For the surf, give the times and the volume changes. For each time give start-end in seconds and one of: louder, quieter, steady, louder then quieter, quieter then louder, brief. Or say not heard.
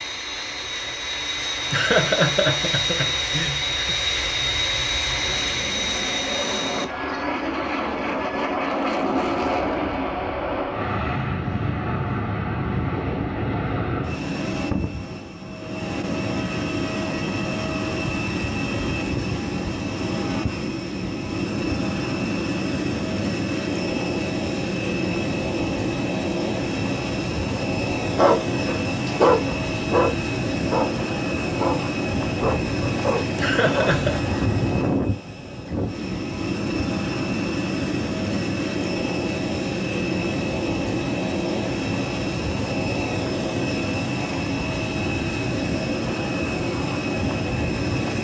not heard.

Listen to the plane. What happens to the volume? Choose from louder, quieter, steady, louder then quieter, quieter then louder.
steady.